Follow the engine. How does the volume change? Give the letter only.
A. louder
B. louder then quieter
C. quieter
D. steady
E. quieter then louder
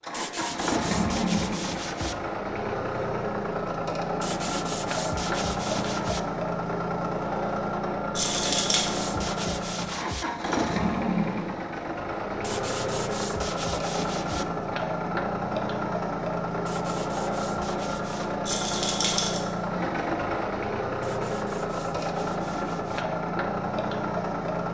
D.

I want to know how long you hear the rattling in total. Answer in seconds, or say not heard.
2 s.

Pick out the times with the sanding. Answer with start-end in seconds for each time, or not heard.
0.1-2.1, 4.2-6.2, 8.2-10.2, 12.4-14.4, 16.6-18.4, 21.0-23.1.